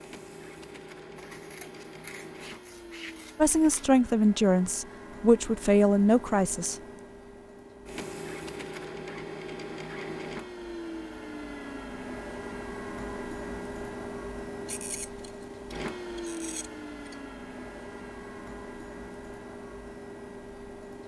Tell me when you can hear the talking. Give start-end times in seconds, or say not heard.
3.4-6.8.